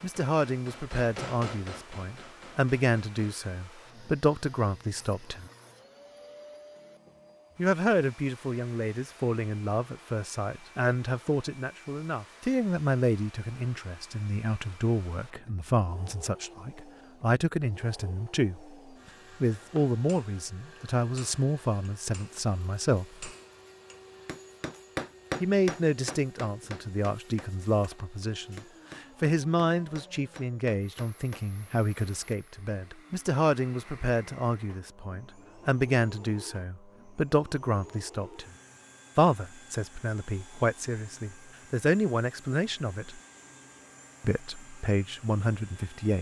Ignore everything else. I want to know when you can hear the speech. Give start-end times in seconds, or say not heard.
0.0-5.5, 7.5-18.6, 19.4-23.2, 25.4-38.5, 39.1-43.2, 44.2-46.1.